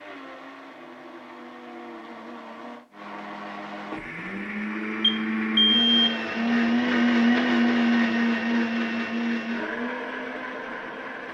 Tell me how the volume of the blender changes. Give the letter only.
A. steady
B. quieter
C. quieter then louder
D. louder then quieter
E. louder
D.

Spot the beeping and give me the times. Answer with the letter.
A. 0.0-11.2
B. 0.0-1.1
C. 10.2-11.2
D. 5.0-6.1
D.